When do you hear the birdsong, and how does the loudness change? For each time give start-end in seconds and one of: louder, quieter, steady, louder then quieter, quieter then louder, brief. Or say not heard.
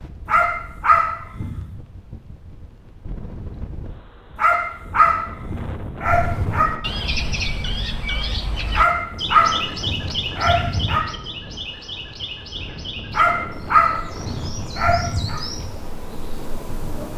6.0-17.1 quieter.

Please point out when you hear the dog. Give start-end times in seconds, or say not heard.
0.2-1.8, 4.3-6.7, 8.8-11.1, 13.1-15.4.